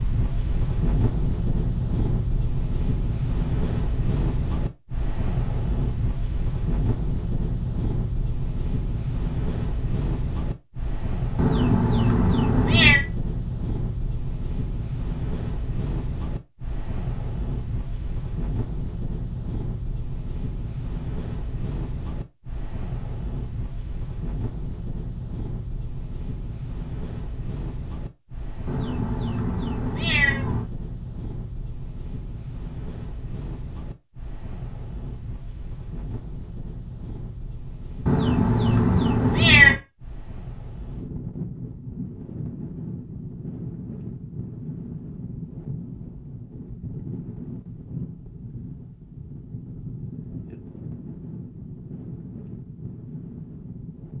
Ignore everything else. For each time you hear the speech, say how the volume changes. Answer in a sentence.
You can't hear the speech here.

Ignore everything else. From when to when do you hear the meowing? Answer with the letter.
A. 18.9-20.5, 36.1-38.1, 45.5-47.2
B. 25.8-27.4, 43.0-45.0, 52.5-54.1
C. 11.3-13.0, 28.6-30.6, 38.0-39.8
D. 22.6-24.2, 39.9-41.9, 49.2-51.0
C.